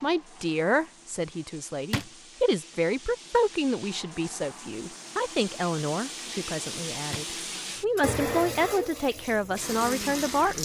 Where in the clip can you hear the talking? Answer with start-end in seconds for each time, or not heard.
0.0-10.6.